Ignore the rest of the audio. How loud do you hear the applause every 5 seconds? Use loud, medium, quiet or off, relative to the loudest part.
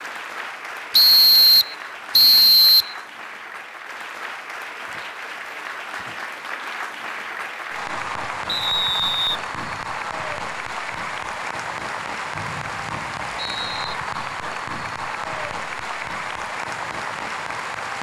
medium, loud, loud, loud.